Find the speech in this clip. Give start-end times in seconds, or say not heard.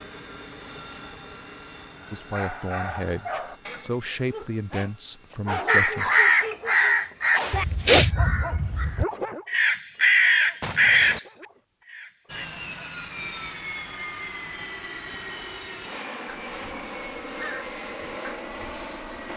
2.1-6.1.